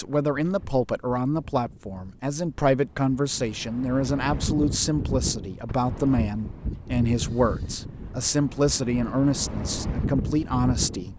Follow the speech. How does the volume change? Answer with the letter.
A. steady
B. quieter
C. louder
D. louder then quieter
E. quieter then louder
A.